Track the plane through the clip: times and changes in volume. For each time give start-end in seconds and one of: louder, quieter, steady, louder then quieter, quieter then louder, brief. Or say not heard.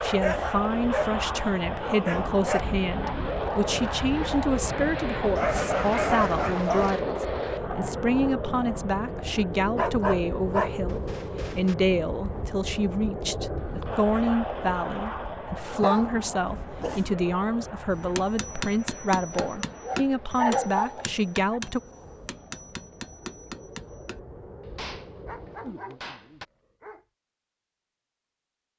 0.0-25.8 quieter.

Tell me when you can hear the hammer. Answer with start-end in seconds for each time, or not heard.
17.9-26.4.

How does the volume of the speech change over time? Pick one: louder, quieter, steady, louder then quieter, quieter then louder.
steady.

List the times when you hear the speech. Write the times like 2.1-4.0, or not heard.
0.0-21.8.